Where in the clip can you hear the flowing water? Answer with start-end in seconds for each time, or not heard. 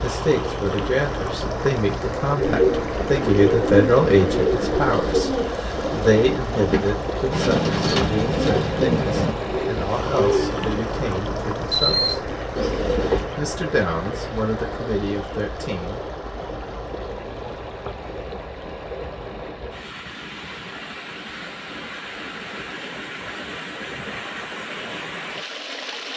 0.0-26.1.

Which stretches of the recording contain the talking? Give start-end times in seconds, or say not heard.
0.0-12.3, 13.3-16.1.